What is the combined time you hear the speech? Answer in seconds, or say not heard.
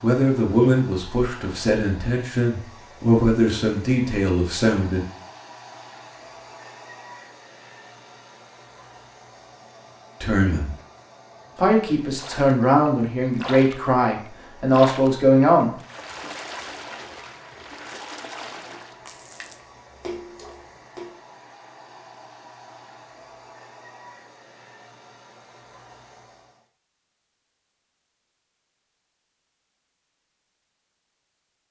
10 s.